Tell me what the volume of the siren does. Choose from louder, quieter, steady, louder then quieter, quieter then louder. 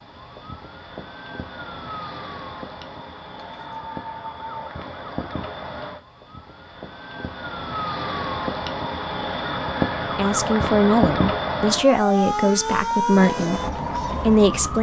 louder.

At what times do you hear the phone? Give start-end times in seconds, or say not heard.
3.3-4.7.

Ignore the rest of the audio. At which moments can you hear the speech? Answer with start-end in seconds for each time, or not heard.
10.2-14.7.